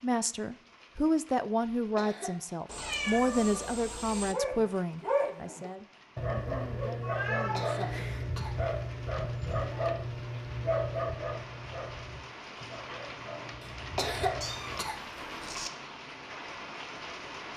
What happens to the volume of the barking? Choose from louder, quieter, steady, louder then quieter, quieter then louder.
quieter.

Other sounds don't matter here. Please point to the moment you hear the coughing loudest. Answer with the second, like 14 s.
14 s.